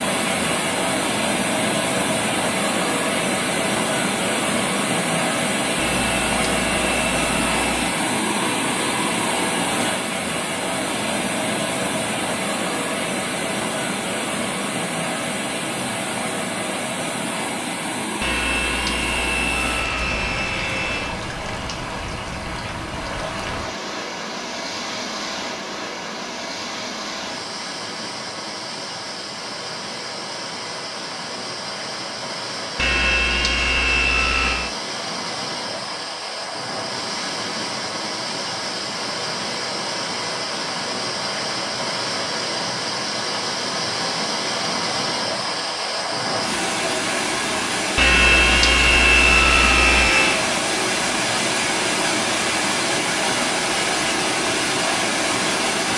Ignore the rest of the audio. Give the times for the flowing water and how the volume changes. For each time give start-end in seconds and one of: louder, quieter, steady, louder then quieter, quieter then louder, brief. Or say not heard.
0.0-55.9 quieter then louder.